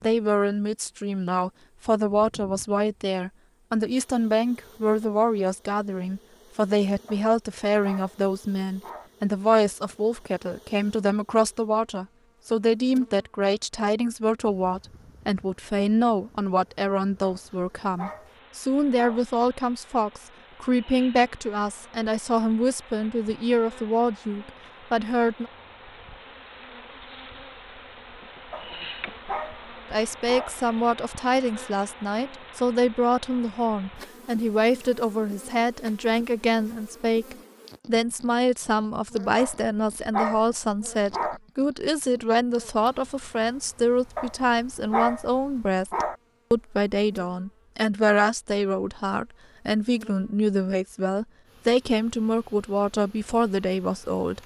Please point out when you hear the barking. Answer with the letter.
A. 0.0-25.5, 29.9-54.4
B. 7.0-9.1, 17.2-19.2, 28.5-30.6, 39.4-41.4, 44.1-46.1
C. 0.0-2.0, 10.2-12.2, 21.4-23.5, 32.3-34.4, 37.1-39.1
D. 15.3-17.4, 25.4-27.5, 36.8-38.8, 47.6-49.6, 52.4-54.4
B.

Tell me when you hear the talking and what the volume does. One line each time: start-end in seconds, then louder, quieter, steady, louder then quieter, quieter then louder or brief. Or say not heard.
0.0-25.5 steady
29.9-54.4 steady.